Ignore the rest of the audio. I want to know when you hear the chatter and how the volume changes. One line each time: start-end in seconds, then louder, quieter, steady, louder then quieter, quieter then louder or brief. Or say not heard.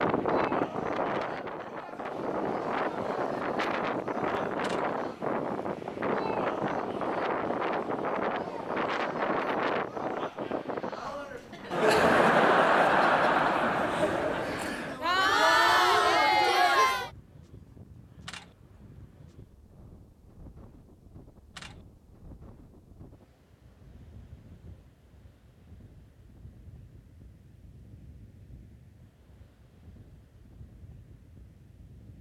0.1-17.1 louder.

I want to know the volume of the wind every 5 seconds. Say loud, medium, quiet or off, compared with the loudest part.
loud, loud, medium, quiet, quiet, quiet, quiet.